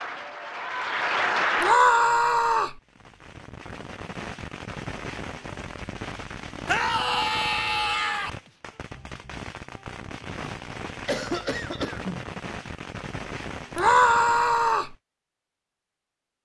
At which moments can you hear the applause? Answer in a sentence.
You can hear the applause from 0.0 to 1.8 s.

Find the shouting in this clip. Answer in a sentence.
You can hear the shouting from 1.6 to 2.8 s, from 6.7 to 8.3 s and from 13.8 to 14.9 s.